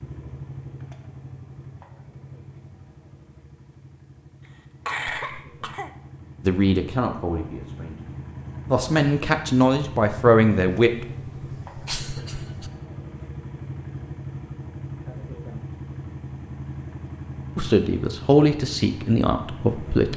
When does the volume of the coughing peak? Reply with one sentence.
The volume of the coughing peaks at 5 seconds.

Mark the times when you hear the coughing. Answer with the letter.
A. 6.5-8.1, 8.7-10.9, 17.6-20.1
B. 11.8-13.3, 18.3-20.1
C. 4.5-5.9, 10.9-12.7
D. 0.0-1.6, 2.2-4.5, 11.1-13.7
C.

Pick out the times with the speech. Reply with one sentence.
You can hear the speech from 6.5 to 8.1 s, from 8.7 to 10.9 s and from 17.6 to 20.1 s.